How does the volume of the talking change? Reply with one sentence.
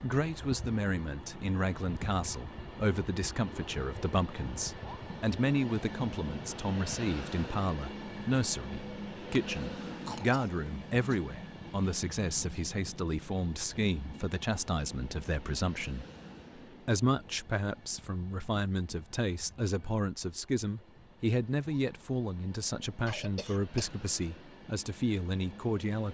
The volume of the talking stays about the same.